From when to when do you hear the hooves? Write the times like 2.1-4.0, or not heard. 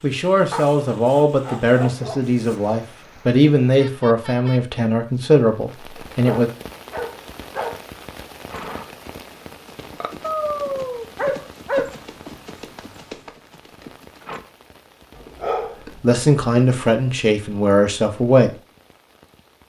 8.5-14.4.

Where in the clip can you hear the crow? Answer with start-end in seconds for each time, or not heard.
not heard.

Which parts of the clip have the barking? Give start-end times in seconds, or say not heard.
0.5-2.8, 6.1-7.8, 10.2-12.0, 15.2-16.2.